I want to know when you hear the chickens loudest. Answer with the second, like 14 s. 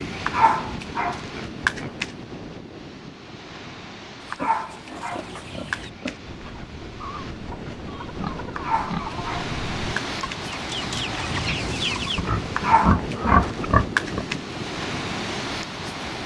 12 s.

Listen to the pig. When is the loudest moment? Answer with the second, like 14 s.
13 s.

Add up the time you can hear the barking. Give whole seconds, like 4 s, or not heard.
7 s.